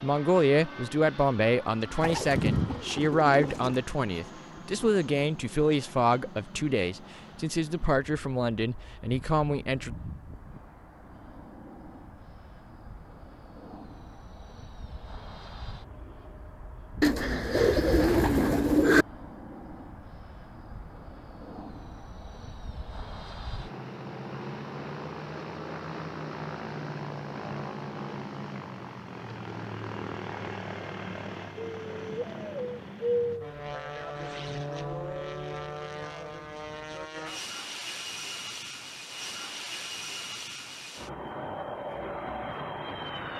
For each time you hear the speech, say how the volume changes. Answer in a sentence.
The speech can be heard from 0.0 to 9.9 s, at a steady volume.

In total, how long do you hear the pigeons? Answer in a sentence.
You can hear the pigeons for 6 seconds altogether.